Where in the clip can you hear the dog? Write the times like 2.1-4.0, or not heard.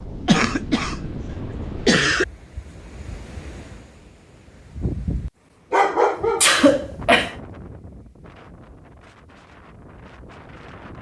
5.7-6.7.